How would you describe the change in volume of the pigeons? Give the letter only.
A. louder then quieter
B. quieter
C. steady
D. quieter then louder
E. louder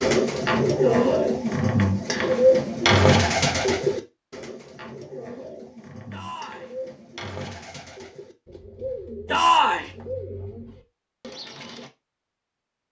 B.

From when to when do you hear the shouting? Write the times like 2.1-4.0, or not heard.
0.8-1.4, 6.1-6.8, 9.2-9.9.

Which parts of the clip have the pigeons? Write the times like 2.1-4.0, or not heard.
0.0-11.9.